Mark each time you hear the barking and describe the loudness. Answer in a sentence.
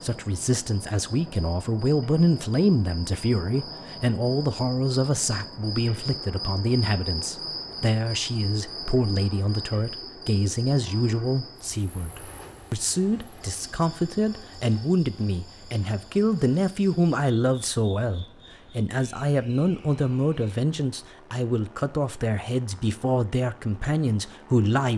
The barking can't be heard in this clip.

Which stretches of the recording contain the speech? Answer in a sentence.
You can hear the speech from 0.0 to 24.9 s.